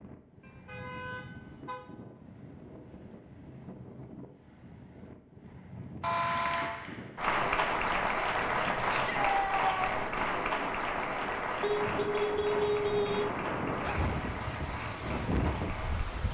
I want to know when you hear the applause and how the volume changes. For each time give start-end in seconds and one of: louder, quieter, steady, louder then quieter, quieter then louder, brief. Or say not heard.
6.0-16.2 quieter.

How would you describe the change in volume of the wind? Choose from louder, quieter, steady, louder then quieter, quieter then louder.
louder.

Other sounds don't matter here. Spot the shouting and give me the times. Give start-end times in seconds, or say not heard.
8.8-10.1.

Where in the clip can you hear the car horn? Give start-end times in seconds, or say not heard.
0.4-1.8, 6.0-6.8, 11.6-13.3.